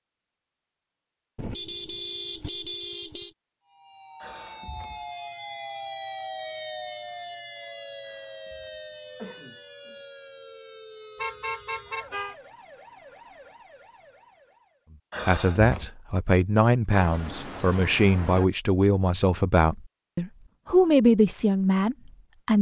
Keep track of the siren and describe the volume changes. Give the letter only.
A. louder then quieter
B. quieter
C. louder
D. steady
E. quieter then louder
B.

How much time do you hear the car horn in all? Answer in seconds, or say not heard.
5 s.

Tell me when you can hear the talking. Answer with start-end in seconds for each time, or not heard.
15.2-22.5.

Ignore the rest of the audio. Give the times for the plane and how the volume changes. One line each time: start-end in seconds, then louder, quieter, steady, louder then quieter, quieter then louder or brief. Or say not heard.
not heard.